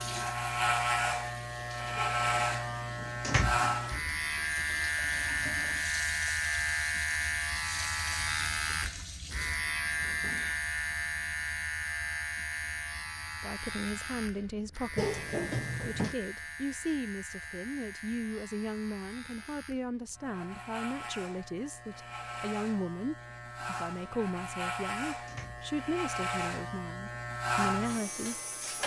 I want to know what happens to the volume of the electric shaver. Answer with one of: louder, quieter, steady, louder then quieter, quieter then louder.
quieter then louder.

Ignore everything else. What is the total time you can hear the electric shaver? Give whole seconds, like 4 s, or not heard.
29 s.